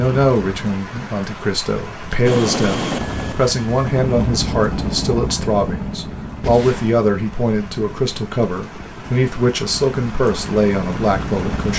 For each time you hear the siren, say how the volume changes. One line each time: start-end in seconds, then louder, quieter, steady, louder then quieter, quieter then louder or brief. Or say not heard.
not heard.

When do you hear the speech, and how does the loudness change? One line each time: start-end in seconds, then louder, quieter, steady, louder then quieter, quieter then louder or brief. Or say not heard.
0.0-11.7 steady.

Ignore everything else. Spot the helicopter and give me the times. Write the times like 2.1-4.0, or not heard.
2.2-11.7.